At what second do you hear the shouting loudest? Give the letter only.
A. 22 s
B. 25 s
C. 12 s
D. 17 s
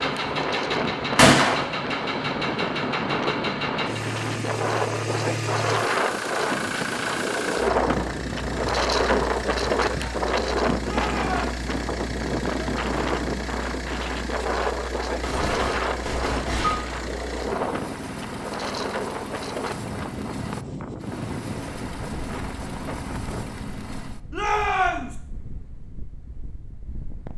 B.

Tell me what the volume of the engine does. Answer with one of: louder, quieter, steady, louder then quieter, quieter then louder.
quieter.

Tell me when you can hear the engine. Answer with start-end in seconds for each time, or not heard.
0.0-24.2.